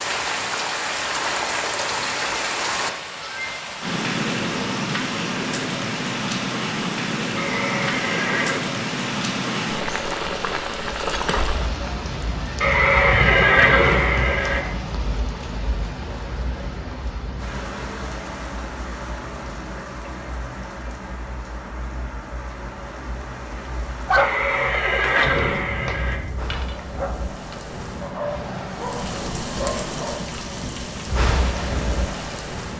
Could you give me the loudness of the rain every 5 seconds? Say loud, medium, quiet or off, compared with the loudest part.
loud, loud, loud, medium, medium, medium, loud.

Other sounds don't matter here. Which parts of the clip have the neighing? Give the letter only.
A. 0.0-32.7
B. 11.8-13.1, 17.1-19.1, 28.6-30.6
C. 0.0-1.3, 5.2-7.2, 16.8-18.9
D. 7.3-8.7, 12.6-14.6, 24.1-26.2
D.